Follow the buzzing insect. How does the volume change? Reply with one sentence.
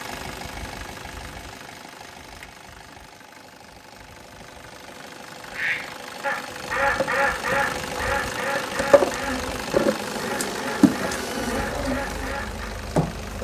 The loudness of the buzzing insect goes up, then down.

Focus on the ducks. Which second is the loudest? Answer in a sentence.
The loudest moment of the ducks is at 7 seconds.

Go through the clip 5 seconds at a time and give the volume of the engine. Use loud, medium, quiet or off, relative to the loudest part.
medium, loud, loud.